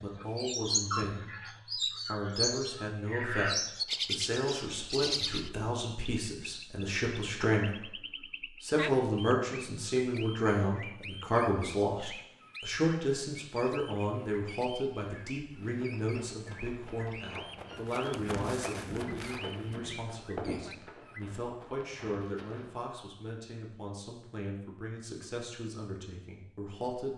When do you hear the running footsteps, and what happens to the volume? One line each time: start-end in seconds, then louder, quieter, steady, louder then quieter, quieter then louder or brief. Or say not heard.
15.6-22.8 louder then quieter.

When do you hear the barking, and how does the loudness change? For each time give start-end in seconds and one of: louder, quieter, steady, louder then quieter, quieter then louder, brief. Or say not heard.
not heard.